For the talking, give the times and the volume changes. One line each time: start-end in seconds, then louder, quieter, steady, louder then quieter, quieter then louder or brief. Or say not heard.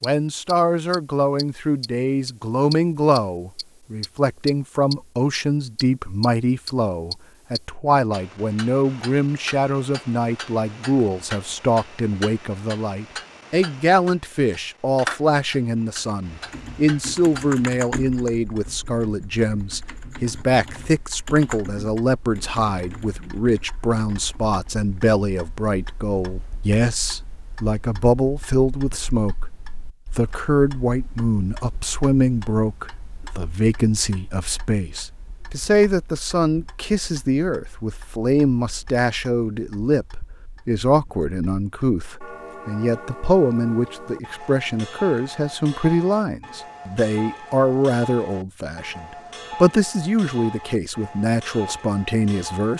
0.0-52.7 steady.